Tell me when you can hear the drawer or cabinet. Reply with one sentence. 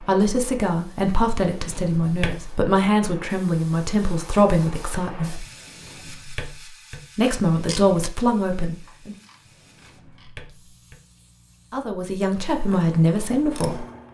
The drawer or cabinet can be heard from 1.5 to 2.6 s, from 5.5 to 7.0 s and from 9.4 to 11.0 s.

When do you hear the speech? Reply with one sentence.
The speech can be heard from 0.0 to 5.5 s, from 7.2 to 9.2 s and from 11.7 to 13.8 s.